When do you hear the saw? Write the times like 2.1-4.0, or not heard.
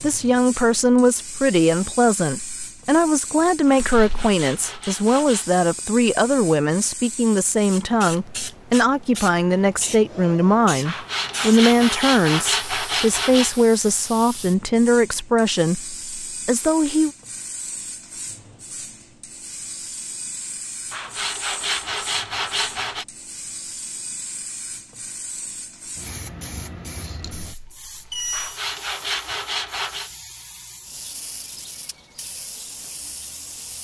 3.7-5.6, 10.8-13.6, 20.9-23.1, 28.3-30.1.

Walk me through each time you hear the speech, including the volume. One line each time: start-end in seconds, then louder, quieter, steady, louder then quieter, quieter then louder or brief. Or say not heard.
0.0-17.1 steady.